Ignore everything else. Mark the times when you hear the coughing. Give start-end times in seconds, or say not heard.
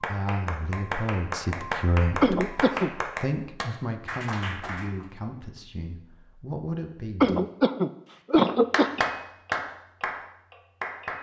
2.2-2.9, 7.2-9.0.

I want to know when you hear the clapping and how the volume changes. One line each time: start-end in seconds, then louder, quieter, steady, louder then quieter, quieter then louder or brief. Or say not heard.
0.0-5.0 steady
8.4-11.1 brief.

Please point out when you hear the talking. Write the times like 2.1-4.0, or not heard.
0.0-7.4.